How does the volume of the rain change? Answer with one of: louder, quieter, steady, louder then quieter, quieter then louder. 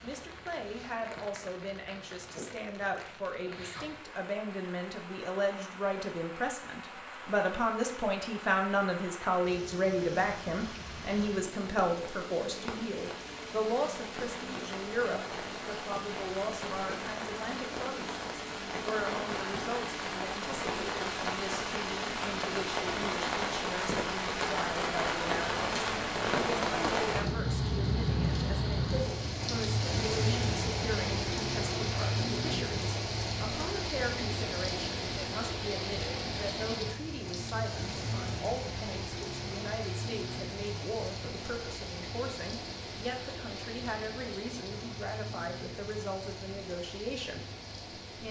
louder then quieter.